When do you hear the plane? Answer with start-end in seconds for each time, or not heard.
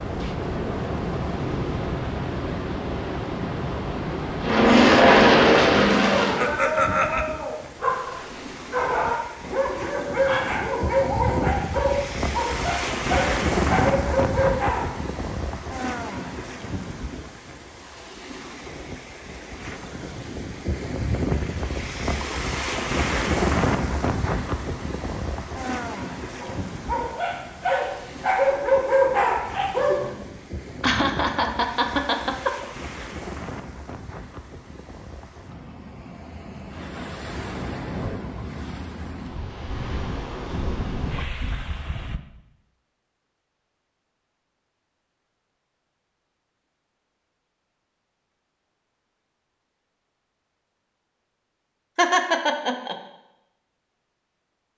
4.4-6.5.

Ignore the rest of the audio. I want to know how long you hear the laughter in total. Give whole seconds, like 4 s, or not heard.
4 s.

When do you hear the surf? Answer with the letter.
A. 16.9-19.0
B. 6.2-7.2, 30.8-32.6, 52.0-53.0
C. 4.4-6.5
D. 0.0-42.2
D.